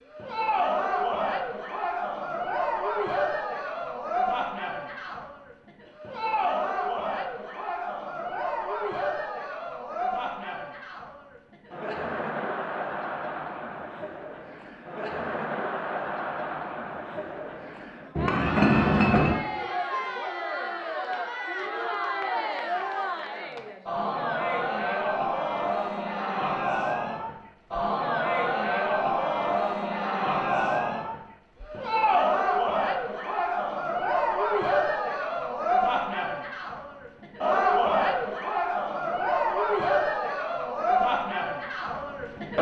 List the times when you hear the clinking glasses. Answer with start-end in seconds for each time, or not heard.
18.1-19.4.